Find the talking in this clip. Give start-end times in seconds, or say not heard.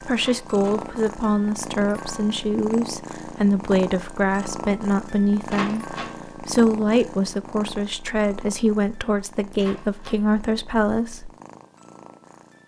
0.0-11.3.